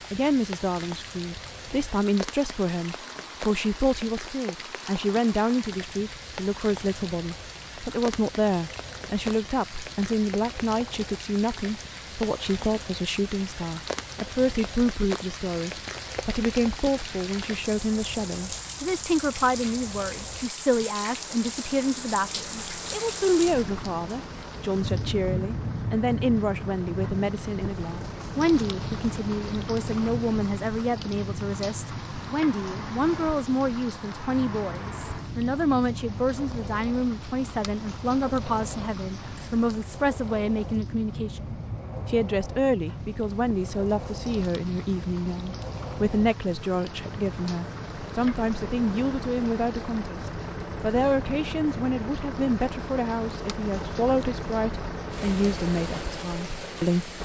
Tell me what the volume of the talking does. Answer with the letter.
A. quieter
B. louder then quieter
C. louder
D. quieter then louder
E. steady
E.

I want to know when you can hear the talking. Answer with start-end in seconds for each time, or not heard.
0.1-57.1.